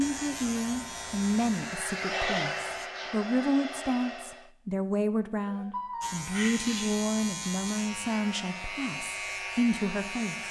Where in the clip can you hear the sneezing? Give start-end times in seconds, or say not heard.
2.6-3.1, 5.3-7.0.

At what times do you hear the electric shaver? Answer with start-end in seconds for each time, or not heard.
0.0-2.9, 6.0-10.4.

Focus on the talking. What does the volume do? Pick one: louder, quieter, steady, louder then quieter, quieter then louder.
steady.